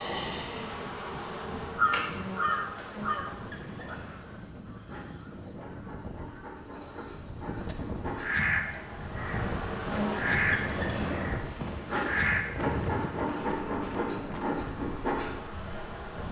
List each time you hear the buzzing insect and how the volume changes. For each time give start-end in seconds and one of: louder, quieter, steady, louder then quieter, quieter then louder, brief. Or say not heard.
0.0-16.2 quieter then louder.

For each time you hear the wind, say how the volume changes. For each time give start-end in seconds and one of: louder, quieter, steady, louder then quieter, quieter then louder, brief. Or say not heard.
0.0-16.2 louder.